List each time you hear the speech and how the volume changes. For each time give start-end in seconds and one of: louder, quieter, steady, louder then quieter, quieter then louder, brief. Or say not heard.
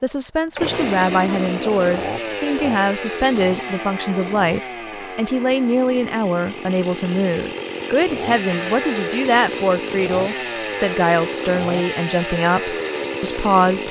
0.0-13.8 steady.